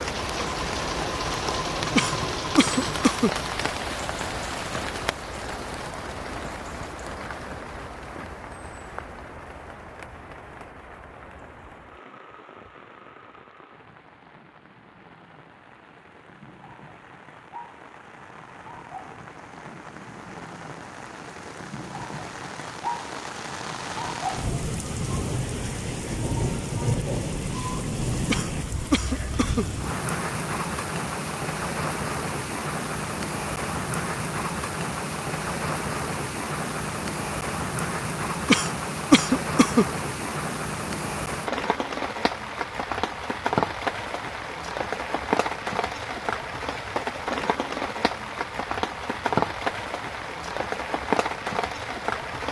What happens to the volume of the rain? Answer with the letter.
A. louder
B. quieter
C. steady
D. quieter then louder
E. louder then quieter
D.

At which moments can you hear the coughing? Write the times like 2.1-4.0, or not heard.
1.9-3.3, 28.3-29.6, 38.5-39.9.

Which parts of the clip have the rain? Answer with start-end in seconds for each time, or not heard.
0.0-52.4.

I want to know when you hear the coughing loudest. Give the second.
39 s.